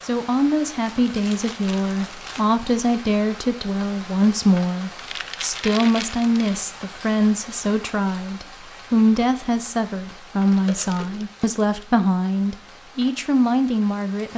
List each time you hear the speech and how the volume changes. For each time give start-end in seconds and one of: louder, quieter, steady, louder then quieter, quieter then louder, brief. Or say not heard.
0.0-14.3 steady.